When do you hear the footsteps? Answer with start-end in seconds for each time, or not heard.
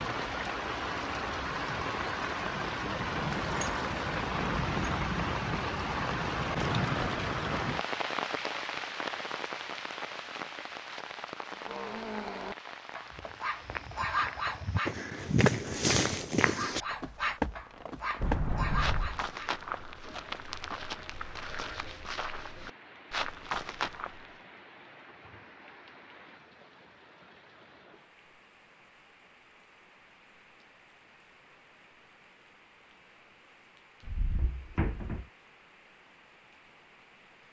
13.1-24.3.